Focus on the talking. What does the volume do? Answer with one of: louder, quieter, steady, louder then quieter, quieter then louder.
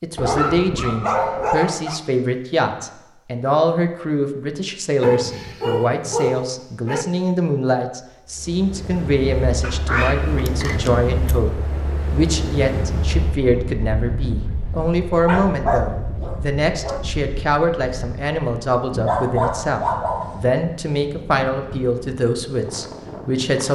steady.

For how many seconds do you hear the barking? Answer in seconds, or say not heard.
9 s.